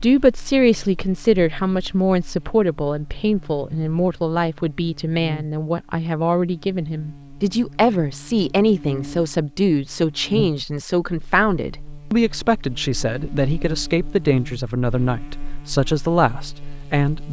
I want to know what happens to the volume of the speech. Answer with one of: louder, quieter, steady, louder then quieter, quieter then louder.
steady.